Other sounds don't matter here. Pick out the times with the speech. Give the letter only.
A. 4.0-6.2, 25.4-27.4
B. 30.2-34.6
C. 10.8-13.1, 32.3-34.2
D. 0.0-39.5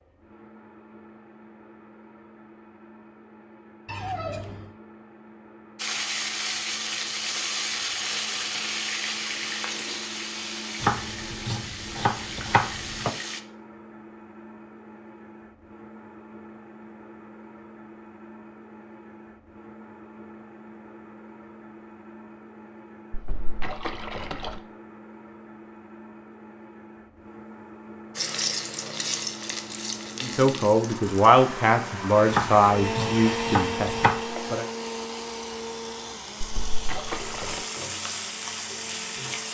B.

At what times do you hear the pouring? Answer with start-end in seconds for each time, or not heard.
3.9-4.7, 23.1-24.6, 36.4-37.6.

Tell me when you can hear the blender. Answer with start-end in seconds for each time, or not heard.
0.0-39.5.